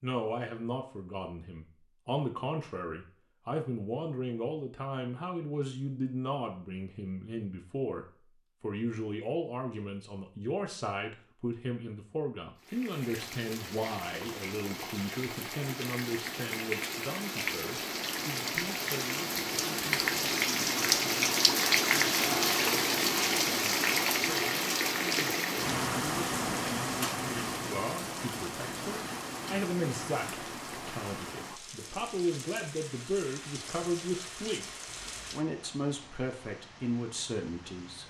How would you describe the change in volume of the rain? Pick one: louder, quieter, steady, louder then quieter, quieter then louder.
louder then quieter.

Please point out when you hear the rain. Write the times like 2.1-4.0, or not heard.
12.6-38.0.